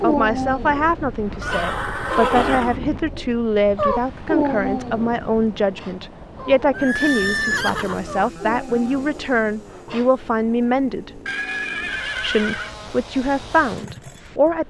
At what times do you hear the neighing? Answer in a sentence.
The neighing can be heard from 1.4 to 2.8 s, from 6.7 to 8.1 s and from 11.2 to 12.8 s.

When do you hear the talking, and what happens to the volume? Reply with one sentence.
The talking can be heard from 0.0 to 11.2 s, at a steady volume; and briefly from 12.2 to 14.6 s.